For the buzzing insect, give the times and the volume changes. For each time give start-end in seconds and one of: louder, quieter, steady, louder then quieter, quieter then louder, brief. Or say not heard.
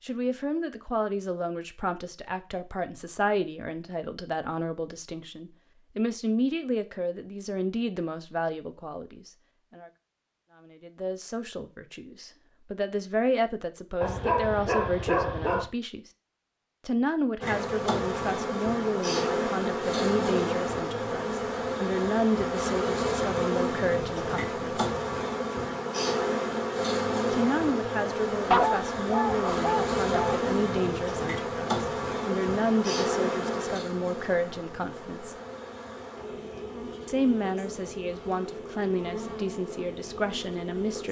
17.4-41.0 quieter.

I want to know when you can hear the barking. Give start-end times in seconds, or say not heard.
14.0-15.7, 28.5-30.4.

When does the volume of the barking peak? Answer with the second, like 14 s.
29 s.